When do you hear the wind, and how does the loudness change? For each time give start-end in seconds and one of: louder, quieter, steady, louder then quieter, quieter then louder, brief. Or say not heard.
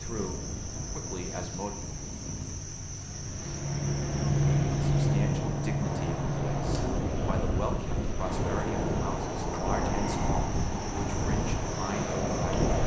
0.0-12.8 louder.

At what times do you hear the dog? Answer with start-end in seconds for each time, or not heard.
not heard.